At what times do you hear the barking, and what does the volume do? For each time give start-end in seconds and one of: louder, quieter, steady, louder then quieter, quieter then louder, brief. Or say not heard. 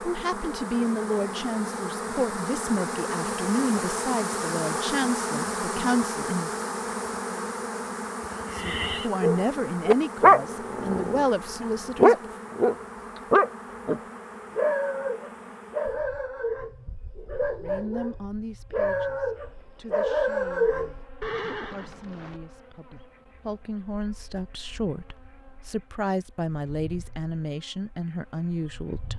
9.2-20.9 quieter then louder.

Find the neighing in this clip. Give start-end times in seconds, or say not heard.
8.2-9.1, 21.2-22.4.